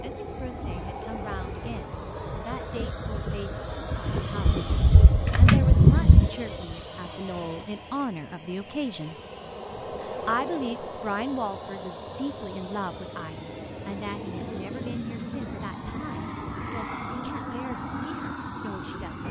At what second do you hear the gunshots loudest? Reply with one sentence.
The loudest moment of the gunshots is at 6 seconds.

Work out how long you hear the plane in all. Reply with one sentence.
You can hear the plane for 19 seconds altogether.